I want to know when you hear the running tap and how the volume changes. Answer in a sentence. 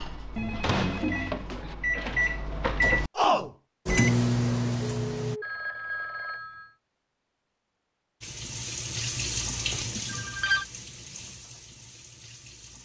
The running tap can be heard from 8.2 to 12.7 s, getting quieter.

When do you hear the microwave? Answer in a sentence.
The microwave can be heard from 0.0 to 5.4 s.